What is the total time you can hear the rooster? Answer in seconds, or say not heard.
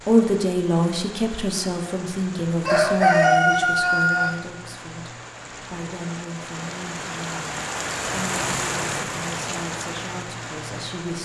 2 s.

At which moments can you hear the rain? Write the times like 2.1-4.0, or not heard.
0.0-11.2.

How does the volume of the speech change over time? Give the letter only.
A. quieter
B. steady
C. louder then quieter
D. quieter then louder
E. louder
A.